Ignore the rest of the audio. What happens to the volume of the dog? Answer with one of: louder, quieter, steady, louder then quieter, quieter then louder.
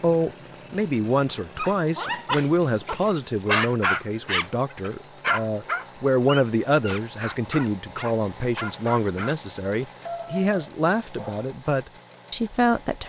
quieter.